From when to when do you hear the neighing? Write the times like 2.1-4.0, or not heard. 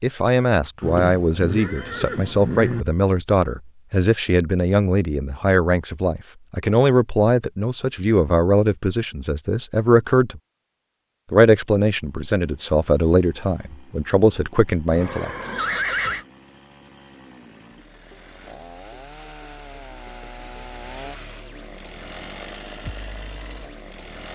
0.8-2.9, 14.9-16.2.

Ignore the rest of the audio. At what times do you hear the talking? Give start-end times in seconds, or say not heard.
0.0-10.4, 11.3-15.3.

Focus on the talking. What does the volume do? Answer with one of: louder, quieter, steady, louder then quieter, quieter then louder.
steady.